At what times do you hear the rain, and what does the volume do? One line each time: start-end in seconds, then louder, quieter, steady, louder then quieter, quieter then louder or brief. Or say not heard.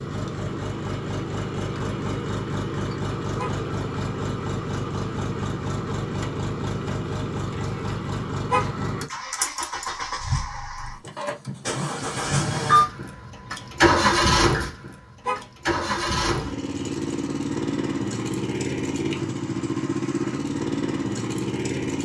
not heard.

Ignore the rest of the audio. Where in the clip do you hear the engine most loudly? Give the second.
14 s.